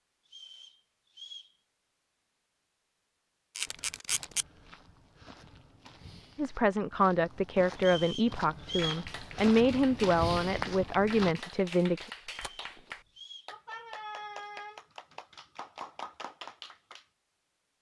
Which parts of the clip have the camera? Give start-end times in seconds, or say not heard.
3.5-4.5, 12.2-13.0.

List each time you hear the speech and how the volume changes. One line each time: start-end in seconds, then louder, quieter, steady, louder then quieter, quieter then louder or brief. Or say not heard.
6.3-12.1 steady.